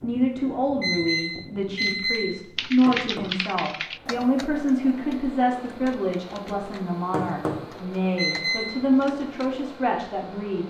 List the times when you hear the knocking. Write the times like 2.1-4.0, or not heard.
2.9-3.3, 7.1-7.7.